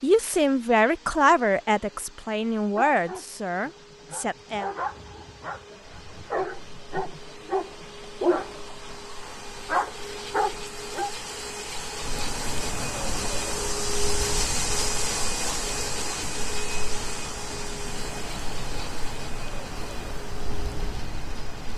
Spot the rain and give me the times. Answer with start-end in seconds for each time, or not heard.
5.8-21.7.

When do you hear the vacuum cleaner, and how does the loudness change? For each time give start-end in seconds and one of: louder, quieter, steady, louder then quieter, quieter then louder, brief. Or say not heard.
0.0-21.7 louder then quieter.